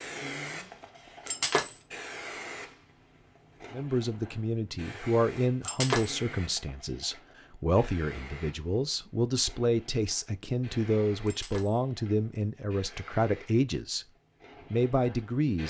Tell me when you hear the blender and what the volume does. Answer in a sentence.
The blender can't be heard in this clip.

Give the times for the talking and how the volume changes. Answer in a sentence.
You can hear the talking from 3.7 to 14.1 s, at a steady volume; and briefly from 14.7 to 15.6 s.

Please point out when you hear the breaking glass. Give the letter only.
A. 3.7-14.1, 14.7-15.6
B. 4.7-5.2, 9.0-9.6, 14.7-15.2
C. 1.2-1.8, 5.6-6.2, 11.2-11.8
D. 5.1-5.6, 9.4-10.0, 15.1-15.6
C.